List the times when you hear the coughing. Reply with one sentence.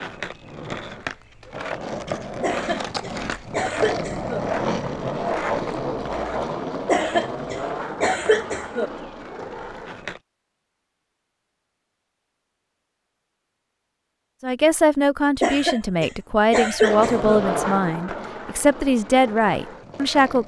The coughing can be heard from 2.4 to 4.4 s, from 6.8 to 8.9 s and from 15.4 to 17.4 s.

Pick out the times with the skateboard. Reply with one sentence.
The skateboard can be heard from 0.0 to 10.2 s and from 16.8 to 20.4 s.